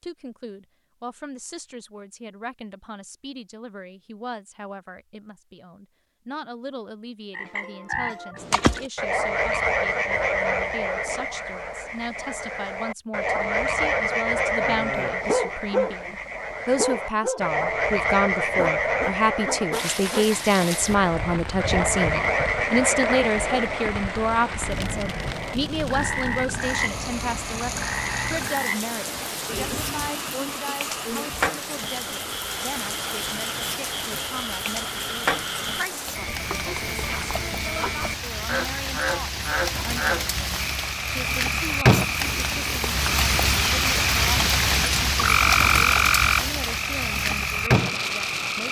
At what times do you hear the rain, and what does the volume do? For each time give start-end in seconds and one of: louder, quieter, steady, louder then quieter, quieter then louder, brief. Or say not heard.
19.7-48.6 louder.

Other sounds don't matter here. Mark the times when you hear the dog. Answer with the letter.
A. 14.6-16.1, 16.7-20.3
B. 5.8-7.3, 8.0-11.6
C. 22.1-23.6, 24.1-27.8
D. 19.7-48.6
A.